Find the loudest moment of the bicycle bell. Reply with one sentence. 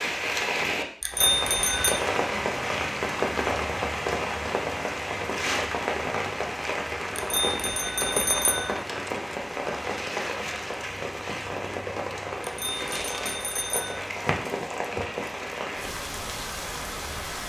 The loudest moment of the bicycle bell is at 1 second.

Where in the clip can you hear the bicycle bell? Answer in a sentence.
The bicycle bell can be heard from 1.0 to 1.9 s, from 7.2 to 8.7 s and from 12.4 to 14.0 s.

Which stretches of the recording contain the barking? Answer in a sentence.
The barking can't be heard in this clip.